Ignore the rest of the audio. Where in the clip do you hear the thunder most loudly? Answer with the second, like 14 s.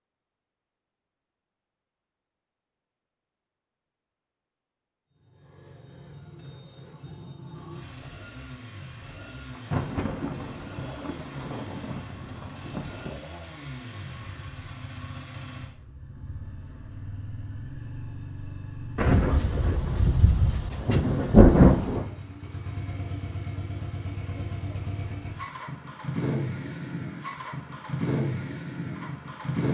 22 s.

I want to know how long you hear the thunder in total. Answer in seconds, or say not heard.
7 s.